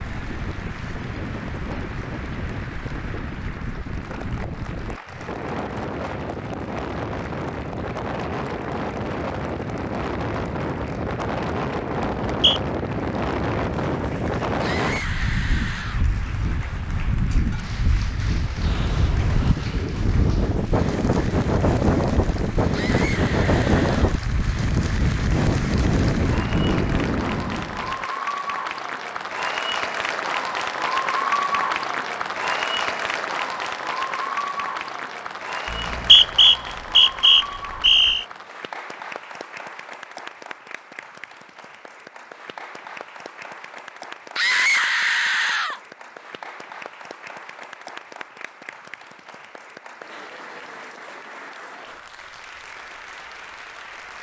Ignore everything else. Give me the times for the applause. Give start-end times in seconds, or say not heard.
0.0-54.1.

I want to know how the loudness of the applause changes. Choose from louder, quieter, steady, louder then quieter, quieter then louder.
louder then quieter.